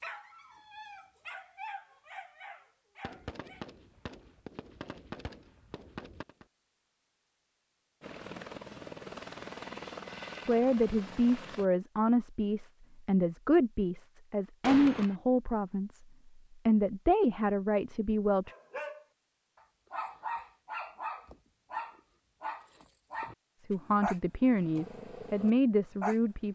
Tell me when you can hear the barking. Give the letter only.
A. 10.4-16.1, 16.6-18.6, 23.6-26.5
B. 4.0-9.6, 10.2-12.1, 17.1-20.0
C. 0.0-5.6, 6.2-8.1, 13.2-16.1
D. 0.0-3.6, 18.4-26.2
D.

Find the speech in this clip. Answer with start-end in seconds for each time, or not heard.
10.4-16.1, 16.6-18.6, 23.6-26.5.